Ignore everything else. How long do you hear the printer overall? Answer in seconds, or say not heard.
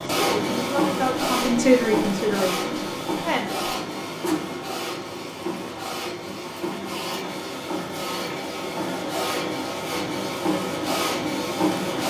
12 s.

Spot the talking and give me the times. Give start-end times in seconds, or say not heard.
0.1-3.6.